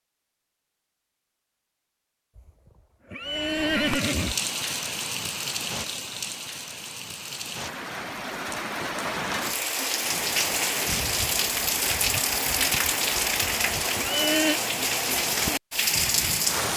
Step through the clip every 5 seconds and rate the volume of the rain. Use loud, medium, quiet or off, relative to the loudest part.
medium, medium, loud, loud.